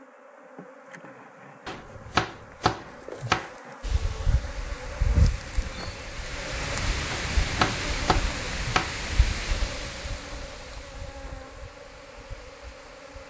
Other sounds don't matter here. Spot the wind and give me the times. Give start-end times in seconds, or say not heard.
3.8-13.2.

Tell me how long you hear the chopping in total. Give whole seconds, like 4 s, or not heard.
4 s.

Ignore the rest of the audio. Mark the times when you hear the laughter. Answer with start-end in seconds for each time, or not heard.
not heard.